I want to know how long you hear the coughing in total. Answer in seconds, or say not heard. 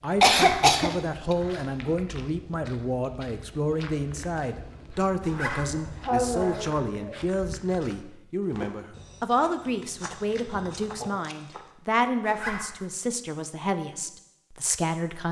3 s.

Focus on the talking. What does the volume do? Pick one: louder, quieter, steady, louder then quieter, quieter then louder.
steady.